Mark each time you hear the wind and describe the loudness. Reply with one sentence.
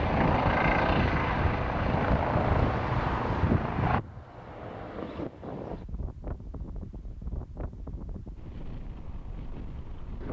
The wind can be heard from 0.0 to 10.2 s, getting quieter.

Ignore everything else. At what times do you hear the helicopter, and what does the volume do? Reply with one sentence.
The helicopter can be heard from 0.0 to 4.0 s, getting quieter.